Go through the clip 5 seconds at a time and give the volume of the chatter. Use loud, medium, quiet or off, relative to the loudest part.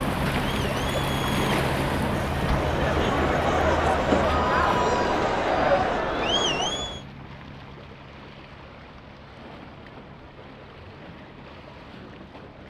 loud, loud, off.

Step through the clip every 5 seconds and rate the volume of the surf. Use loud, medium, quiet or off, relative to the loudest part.
loud, quiet, quiet.